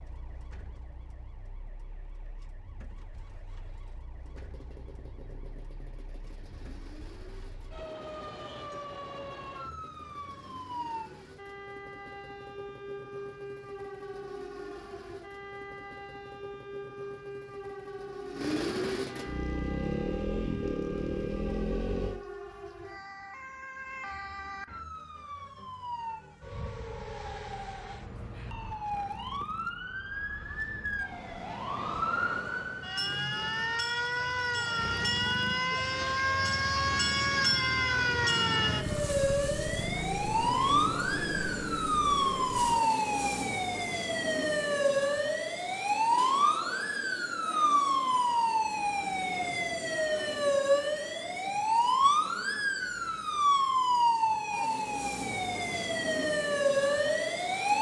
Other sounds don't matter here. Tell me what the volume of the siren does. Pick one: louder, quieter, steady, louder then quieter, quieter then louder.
louder.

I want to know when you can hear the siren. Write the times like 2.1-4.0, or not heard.
0.0-57.7.